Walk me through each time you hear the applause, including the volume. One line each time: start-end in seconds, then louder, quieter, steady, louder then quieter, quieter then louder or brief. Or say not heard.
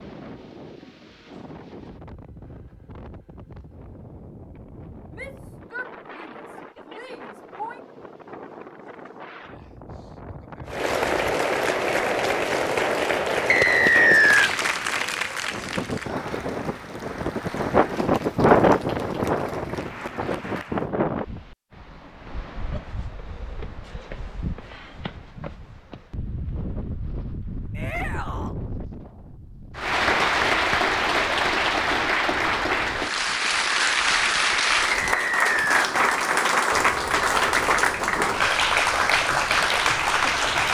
10.7-20.9 quieter
29.8-40.6 steady.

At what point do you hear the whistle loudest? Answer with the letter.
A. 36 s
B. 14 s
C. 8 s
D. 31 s
B.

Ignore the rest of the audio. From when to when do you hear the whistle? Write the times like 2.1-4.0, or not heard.
13.4-14.5, 35.0-36.0.